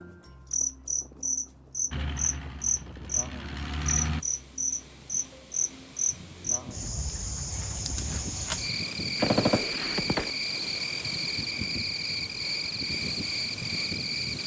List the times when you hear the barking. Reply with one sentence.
The barking can't be heard in this clip.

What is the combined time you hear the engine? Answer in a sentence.
You can hear the engine for 2 seconds altogether.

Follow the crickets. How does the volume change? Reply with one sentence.
The volume of the crickets stays about the same.